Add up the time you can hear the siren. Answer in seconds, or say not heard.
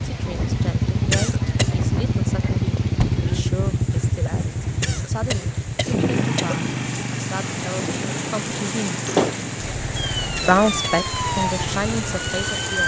3 s.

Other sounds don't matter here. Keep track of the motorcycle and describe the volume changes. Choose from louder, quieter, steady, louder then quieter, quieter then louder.
quieter.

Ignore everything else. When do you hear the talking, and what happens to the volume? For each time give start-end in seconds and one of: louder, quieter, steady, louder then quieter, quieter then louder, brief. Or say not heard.
0.0-9.0 steady
10.4-12.8 brief.